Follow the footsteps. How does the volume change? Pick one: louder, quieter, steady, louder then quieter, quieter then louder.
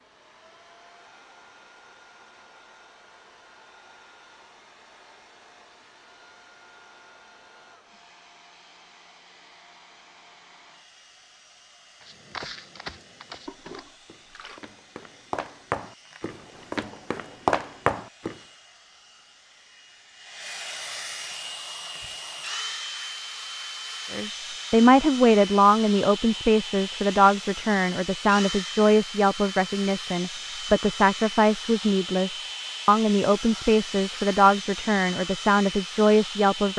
quieter then louder.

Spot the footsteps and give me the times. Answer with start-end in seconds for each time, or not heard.
12.0-18.4.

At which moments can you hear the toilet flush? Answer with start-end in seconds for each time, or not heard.
13.4-14.6.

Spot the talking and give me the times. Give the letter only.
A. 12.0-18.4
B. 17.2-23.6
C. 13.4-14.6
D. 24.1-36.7
D.